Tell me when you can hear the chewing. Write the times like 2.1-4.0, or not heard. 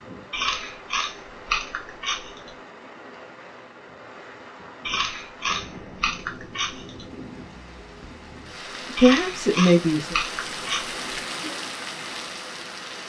0.3-2.5, 4.8-7.0, 8.9-11.0.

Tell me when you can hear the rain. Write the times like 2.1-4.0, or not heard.
0.0-13.0.